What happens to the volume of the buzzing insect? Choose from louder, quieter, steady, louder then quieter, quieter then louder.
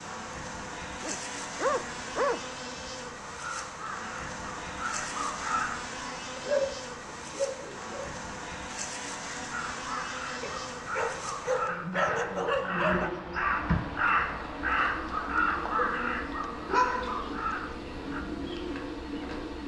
steady.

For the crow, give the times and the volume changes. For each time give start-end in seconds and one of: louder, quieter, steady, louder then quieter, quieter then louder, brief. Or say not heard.
3.4-5.8 brief
9.5-18.2 louder then quieter.